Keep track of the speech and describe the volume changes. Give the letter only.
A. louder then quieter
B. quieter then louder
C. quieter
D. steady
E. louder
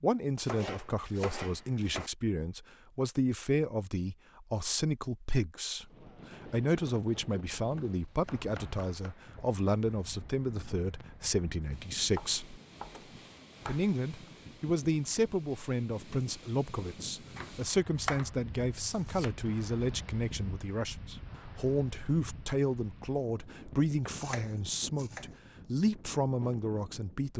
D.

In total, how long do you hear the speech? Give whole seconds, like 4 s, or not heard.
26 s.